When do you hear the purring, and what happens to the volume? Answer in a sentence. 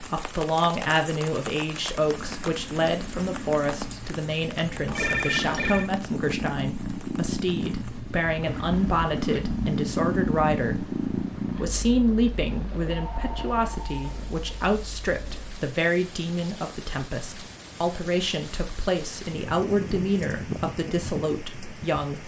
The purring can be heard from 2.0 to 15.6 s, getting louder then quieter.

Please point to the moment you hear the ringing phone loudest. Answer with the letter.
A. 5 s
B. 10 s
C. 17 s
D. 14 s
A.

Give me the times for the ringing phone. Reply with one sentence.
The ringing phone can be heard from 4.8 to 5.9 s and from 12.9 to 14.4 s.